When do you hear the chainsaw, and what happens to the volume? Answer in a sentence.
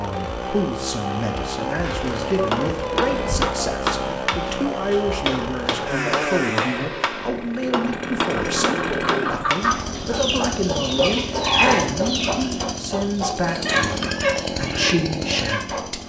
You can hear the chainsaw from 0.0 to 16.0 s, at a steady volume.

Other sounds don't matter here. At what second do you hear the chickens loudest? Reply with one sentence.
The volume of the chickens peaks at 12 seconds.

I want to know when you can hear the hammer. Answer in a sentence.
The hammer can be heard from 1.8 to 10.2 s.